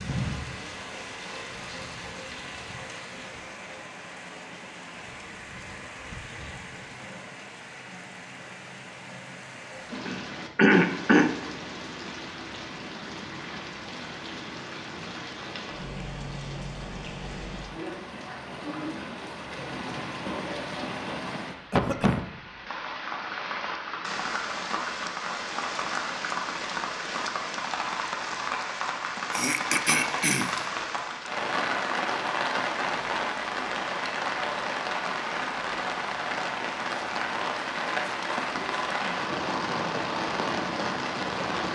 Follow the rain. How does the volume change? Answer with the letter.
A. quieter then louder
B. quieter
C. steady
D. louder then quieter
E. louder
E.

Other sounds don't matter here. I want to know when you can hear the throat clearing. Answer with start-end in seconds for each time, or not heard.
10.1-11.3, 21.7-22.2, 29.3-30.5.